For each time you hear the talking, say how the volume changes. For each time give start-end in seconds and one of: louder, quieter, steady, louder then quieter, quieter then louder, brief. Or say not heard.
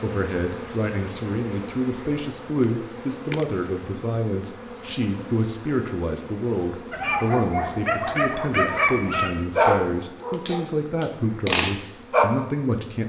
0.0-13.0 steady.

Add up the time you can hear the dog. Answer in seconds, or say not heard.
5 s.